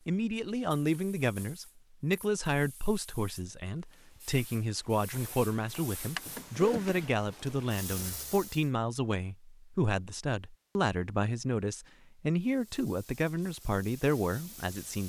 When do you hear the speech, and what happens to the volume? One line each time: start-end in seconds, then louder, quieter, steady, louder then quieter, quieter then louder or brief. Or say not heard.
0.1-15.0 steady.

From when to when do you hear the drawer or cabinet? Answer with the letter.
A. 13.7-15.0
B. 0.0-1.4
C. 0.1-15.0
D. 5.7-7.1
D.